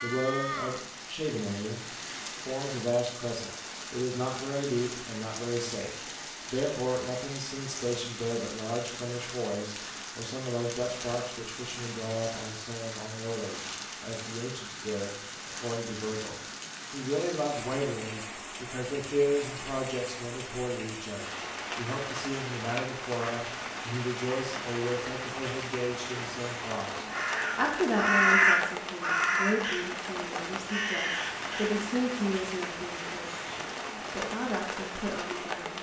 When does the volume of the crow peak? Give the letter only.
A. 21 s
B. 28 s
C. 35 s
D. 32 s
B.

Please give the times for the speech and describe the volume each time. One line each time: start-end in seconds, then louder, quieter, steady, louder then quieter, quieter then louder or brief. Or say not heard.
0.0-35.7 steady.